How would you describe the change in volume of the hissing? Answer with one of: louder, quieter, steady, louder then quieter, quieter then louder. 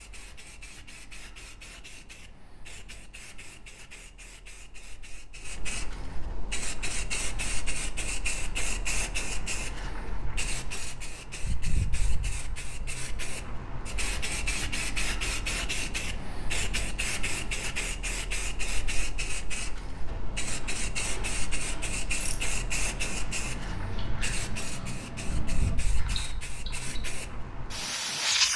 louder.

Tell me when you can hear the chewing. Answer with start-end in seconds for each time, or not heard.
20.1-27.1.